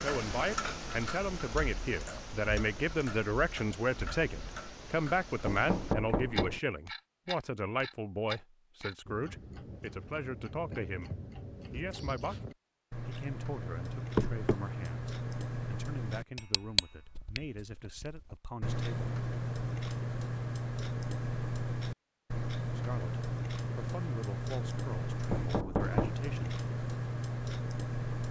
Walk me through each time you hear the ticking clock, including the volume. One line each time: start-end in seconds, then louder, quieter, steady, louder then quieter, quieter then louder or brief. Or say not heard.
0.0-28.2 louder.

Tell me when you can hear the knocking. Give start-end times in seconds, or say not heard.
5.4-6.6, 14.2-14.6, 25.2-26.2.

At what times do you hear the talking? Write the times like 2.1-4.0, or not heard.
0.0-11.1, 11.7-12.3, 13.0-19.1, 22.8-26.6.